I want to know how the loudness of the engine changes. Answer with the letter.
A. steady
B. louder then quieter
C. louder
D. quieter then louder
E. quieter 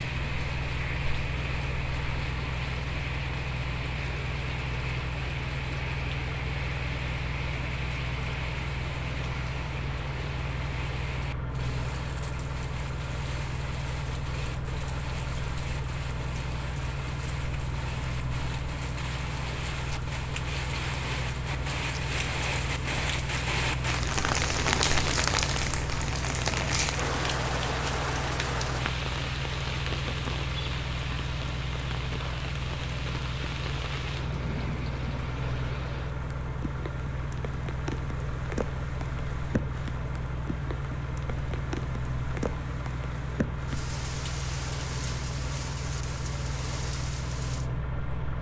A.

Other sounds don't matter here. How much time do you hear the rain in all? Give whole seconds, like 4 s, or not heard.
48 s.